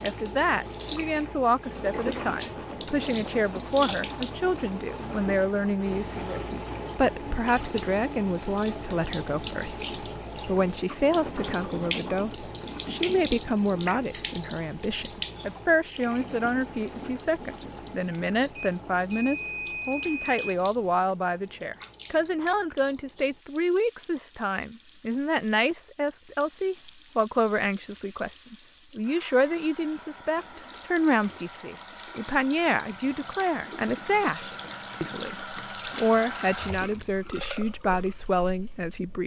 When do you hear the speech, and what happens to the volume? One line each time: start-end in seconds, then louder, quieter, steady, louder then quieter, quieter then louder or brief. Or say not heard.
0.0-39.2 steady.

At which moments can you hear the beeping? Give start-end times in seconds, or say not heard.
18.6-20.6.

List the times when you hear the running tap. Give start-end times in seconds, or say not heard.
0.0-39.2.